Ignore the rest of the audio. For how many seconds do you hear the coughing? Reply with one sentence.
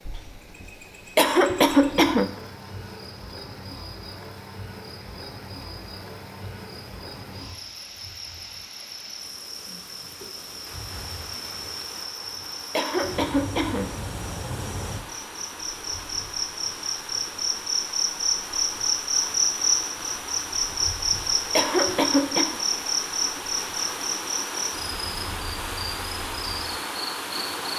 You can hear the coughing for 3 seconds altogether.